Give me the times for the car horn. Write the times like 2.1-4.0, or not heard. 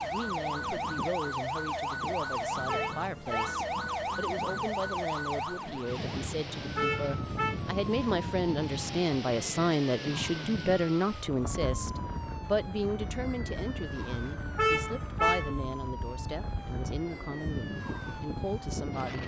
2.6-3.6, 6.8-7.6, 14.6-15.6.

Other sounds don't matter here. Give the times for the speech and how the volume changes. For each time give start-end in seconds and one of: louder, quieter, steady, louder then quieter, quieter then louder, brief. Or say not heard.
0.0-19.2 louder then quieter.